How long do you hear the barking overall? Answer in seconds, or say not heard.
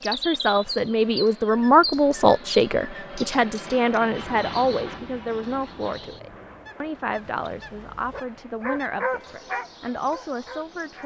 4 s.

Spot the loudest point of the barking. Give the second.
9 s.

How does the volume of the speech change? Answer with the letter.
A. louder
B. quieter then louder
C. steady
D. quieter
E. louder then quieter
D.